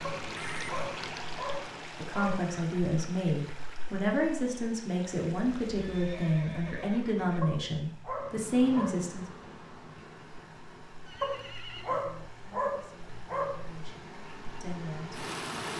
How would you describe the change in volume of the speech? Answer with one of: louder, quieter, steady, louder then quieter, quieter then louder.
quieter.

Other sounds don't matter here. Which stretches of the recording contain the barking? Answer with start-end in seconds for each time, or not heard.
0.0-2.5, 7.4-8.9, 11.2-13.7.